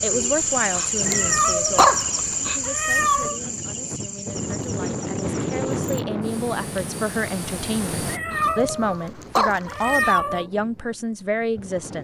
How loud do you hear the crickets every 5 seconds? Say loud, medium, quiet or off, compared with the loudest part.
loud, medium, off.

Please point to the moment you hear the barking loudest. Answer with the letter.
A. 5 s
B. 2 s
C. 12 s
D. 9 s
B.